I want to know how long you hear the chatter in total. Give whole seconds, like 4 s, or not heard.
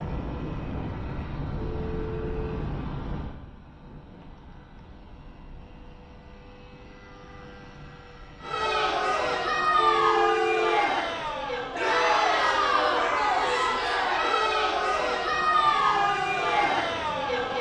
9 s.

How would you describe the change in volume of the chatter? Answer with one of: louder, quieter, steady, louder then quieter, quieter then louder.
steady.